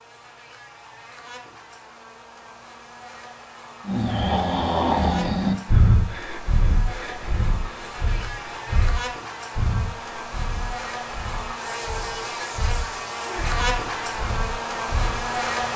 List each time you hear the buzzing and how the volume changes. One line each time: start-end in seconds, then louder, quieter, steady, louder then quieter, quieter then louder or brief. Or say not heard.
0.0-15.7 louder.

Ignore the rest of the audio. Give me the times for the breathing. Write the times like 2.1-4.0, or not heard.
3.9-15.4.